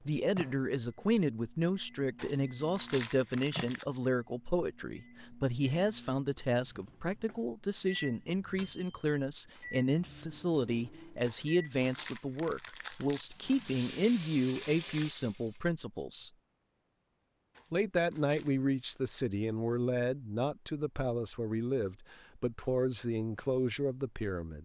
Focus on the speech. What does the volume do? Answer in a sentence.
The volume of the speech stays about the same.